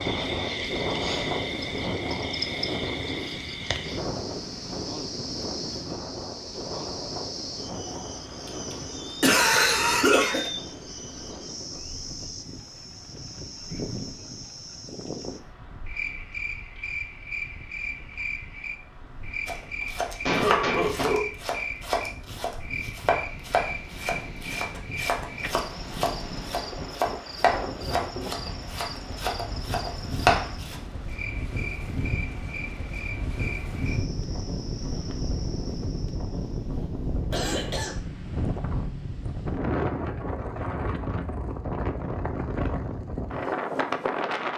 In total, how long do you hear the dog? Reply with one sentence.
The dog can't be heard in this clip.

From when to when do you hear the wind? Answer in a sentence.
The wind can be heard from 0.0 to 44.5 s.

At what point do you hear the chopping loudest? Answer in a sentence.
The loudest moment of the chopping is at 30 seconds.